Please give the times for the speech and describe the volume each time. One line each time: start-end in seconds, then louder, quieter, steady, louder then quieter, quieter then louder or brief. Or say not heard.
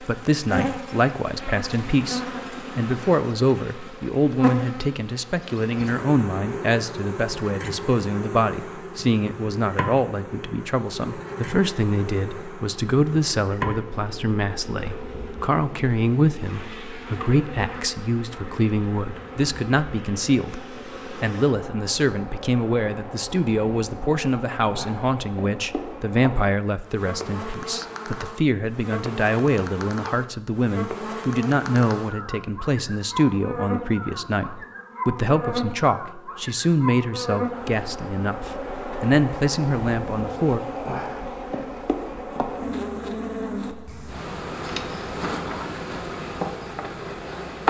0.0-40.6 steady.